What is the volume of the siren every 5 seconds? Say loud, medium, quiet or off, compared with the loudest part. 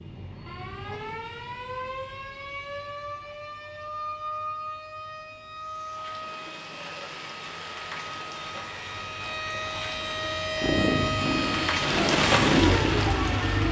medium, medium, loud.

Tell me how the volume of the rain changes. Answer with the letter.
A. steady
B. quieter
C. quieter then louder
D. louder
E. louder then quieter
D.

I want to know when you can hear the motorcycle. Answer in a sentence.
You can hear the motorcycle from 10.6 to 13.6 s.